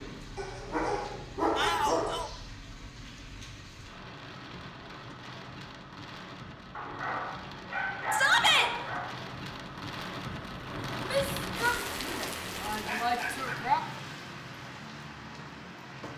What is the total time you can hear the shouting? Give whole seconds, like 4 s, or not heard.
4 s.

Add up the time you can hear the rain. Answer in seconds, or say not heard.
16 s.